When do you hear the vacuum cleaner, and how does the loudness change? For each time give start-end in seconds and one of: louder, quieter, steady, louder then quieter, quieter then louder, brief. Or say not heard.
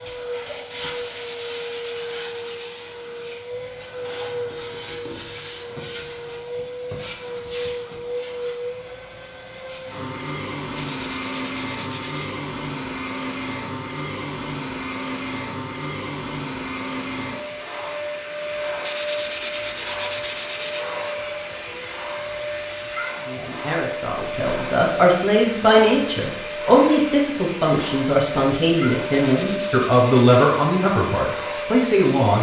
0.0-32.3 steady.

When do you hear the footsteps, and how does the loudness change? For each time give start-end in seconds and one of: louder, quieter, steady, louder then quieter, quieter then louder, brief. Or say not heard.
not heard.